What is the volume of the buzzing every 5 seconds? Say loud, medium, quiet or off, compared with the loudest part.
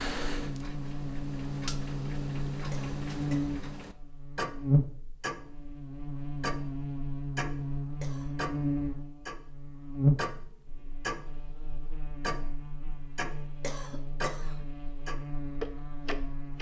loud, loud, loud, medium.